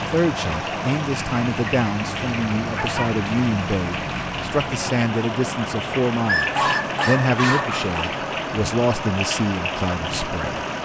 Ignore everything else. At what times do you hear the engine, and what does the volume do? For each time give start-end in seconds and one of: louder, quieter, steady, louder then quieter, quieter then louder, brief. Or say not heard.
0.0-10.8 steady.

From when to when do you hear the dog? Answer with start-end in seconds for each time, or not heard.
2.7-3.1, 6.2-7.8.